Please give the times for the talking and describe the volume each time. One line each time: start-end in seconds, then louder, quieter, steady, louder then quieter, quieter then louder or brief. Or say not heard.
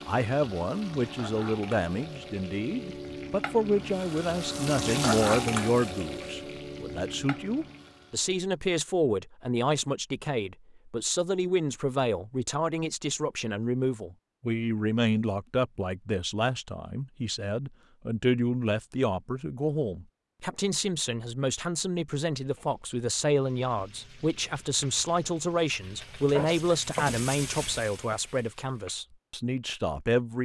0.1-30.4 steady.